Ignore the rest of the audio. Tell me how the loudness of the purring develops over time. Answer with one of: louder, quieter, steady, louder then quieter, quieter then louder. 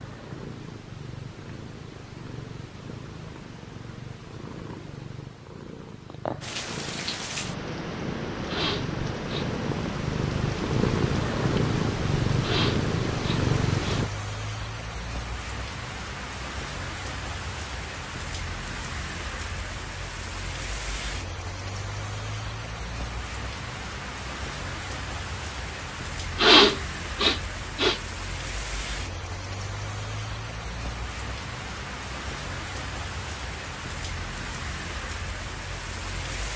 louder.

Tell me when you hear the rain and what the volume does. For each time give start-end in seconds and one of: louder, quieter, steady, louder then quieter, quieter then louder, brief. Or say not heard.
6.4-36.5 steady.